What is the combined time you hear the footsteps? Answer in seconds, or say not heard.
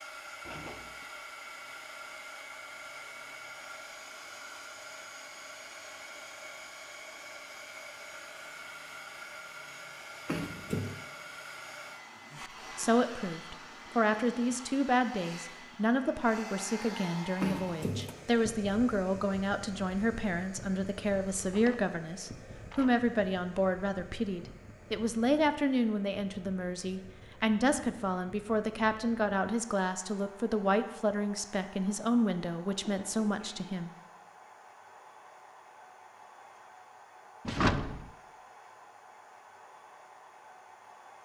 not heard.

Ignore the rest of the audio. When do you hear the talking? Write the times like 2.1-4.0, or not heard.
12.3-33.9.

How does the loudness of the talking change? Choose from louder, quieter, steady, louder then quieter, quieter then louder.
steady.